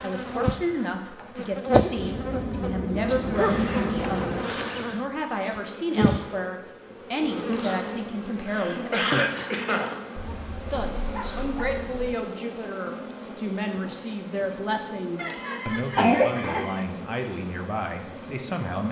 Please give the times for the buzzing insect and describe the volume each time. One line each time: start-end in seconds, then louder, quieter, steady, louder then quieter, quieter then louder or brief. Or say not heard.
0.0-18.8 quieter.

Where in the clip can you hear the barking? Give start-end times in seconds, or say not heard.
1.9-4.5, 10.2-12.2.